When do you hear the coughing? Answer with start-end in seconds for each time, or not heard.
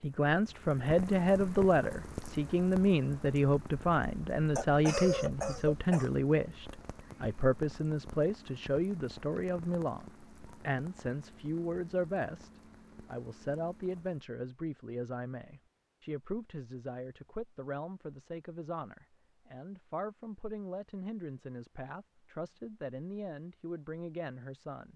4.5-6.2.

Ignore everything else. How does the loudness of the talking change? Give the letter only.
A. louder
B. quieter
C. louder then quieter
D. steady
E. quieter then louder
B.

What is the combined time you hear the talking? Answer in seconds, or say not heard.
25 s.